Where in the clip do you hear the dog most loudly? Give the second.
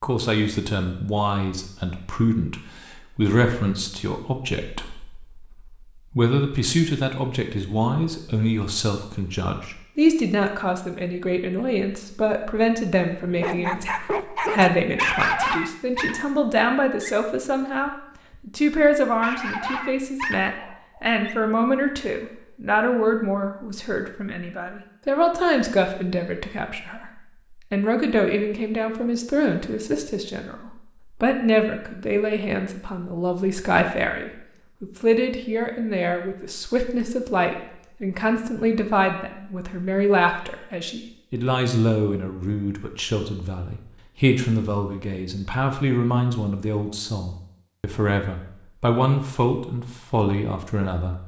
15 s.